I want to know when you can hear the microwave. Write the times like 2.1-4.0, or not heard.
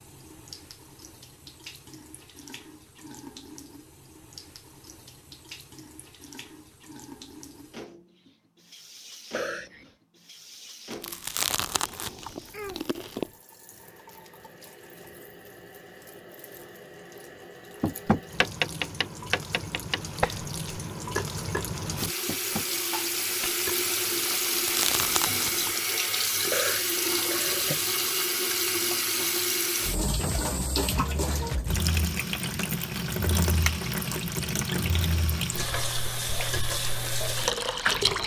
not heard.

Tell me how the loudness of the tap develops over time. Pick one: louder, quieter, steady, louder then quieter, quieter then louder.
louder.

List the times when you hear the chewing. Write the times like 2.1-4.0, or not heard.
10.9-13.3, 24.4-25.8.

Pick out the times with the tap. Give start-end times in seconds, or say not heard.
0.0-38.2.